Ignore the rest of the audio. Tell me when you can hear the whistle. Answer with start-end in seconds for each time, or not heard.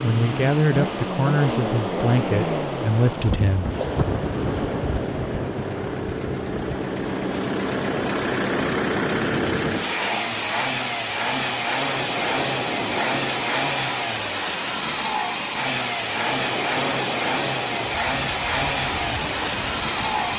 not heard.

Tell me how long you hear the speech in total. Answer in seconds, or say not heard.
4 s.